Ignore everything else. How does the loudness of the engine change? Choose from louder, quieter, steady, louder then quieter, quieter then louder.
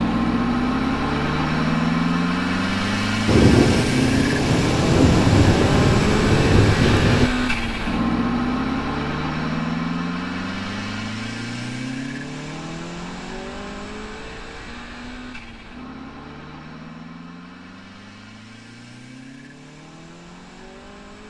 quieter.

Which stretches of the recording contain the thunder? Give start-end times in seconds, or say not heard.
3.2-7.3.